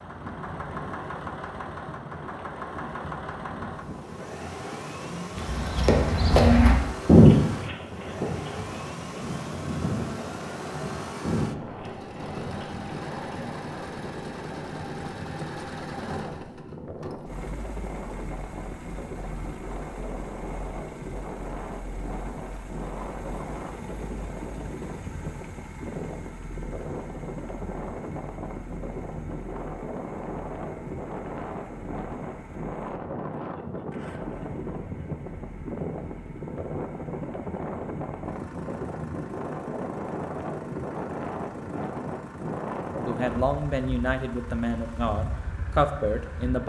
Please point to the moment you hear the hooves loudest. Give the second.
7 s.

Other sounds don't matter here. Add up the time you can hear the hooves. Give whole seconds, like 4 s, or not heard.
8 s.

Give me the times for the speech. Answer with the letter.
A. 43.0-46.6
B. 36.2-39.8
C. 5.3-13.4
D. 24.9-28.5
A.